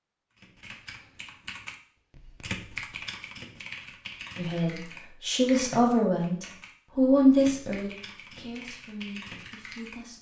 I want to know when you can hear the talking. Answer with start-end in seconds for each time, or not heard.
4.3-10.1.